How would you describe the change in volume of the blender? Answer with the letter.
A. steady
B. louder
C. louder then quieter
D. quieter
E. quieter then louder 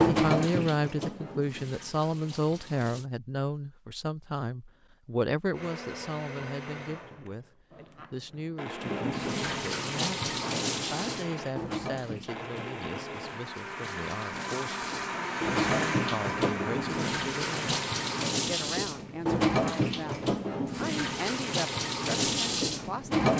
B.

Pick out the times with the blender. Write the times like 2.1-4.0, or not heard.
5.5-18.1.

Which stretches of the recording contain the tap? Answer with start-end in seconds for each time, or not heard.
0.0-3.0, 8.8-23.3.